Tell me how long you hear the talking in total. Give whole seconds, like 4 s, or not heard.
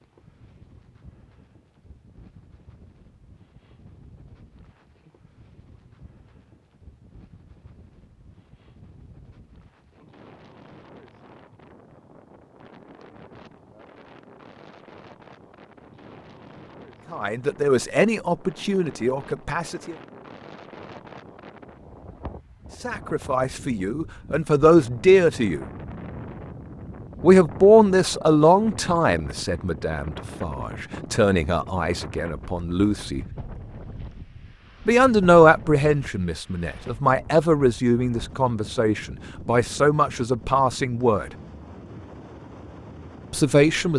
19 s.